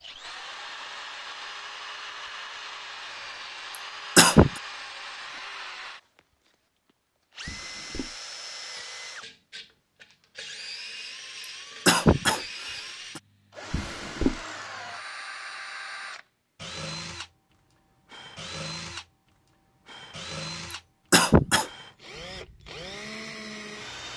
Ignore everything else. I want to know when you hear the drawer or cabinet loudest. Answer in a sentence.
The volume of the drawer or cabinet peaks at 14 seconds.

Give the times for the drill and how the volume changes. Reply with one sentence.
The drill can be heard from 0.0 to 6.2 s, at a steady volume; and from 7.3 to 24.1 s, at a steady volume.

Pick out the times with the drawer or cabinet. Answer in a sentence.
You can hear the drawer or cabinet from 7.5 to 8.2 s and from 13.7 to 14.4 s.